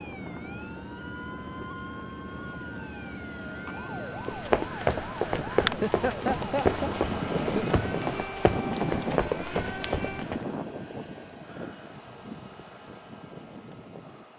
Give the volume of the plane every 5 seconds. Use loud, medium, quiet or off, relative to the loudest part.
medium, loud, medium.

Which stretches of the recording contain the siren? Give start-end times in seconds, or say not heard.
0.0-10.2.